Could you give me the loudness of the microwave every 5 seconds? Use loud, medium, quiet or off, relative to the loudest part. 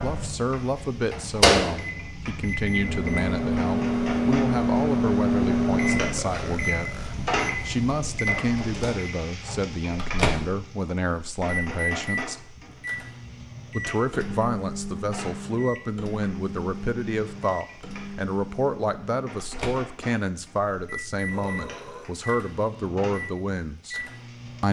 loud, loud, medium, quiet, quiet.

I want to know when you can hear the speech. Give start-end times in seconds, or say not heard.
0.0-6.9, 7.7-12.4, 13.7-24.0.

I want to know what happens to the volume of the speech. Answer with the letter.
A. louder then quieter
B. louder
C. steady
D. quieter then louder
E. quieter
C.